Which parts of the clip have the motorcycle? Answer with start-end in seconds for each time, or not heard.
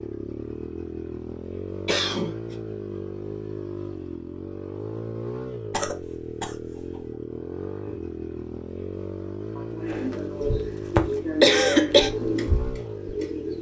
0.0-13.5.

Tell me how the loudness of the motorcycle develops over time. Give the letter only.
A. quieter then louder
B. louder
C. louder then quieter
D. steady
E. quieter
D.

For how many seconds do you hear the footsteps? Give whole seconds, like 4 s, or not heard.
not heard.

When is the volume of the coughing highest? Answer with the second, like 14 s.
12 s.